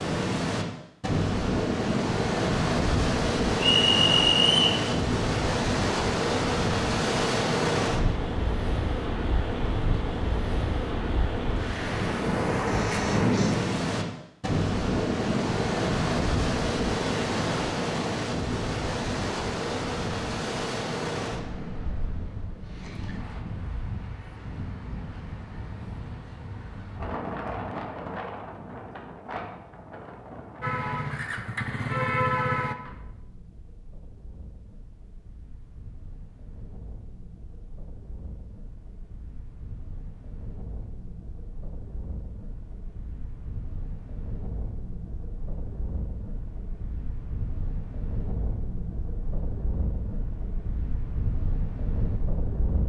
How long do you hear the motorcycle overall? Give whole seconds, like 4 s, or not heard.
2 s.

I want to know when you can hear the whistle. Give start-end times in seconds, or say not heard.
3.5-4.8.